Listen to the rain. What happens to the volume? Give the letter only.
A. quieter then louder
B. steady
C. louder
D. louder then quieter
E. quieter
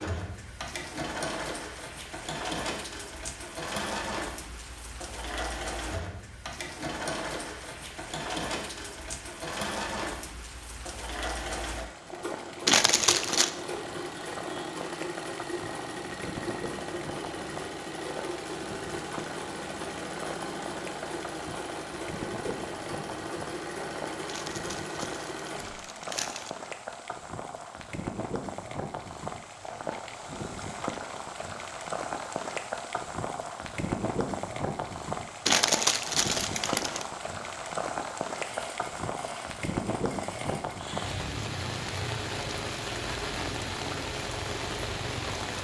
C.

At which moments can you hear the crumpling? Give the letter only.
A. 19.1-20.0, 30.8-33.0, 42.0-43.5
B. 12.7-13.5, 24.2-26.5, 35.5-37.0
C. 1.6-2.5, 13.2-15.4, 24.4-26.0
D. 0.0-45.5
B.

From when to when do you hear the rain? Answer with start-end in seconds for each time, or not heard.
0.0-45.5.